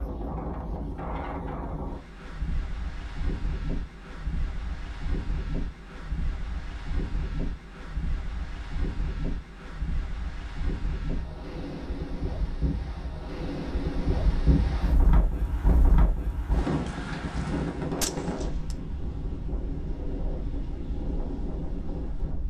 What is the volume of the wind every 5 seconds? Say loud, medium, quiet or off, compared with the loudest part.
medium, medium, loud, loud, medium.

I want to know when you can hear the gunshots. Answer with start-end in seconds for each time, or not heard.
18.0-18.8.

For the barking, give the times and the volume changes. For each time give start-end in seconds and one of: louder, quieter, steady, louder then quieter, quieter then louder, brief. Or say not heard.
not heard.